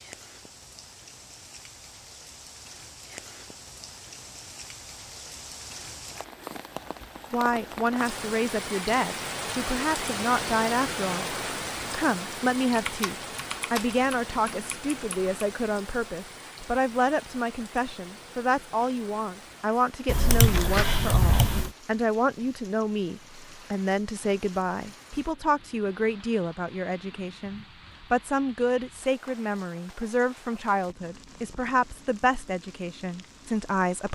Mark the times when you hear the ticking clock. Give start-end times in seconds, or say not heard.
not heard.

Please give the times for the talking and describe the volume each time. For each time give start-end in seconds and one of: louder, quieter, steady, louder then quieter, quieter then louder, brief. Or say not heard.
7.3-34.1 steady.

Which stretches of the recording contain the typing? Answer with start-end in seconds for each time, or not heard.
12.8-15.3, 20.1-21.7.